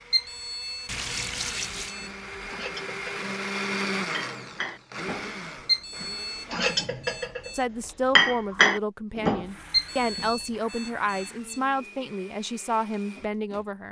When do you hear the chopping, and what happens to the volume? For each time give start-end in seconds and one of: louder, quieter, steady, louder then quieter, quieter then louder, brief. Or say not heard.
not heard.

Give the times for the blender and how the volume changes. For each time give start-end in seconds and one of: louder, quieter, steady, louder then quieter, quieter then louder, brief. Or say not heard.
0.0-6.7 louder then quieter
9.3-13.8 steady.